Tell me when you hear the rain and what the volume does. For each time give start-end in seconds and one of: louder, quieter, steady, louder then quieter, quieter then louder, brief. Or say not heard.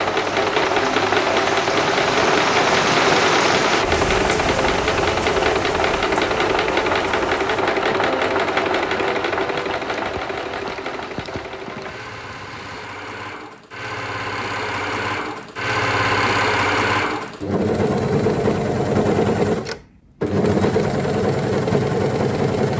0.0-12.9 quieter.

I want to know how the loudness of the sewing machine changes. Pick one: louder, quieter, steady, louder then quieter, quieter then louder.
quieter then louder.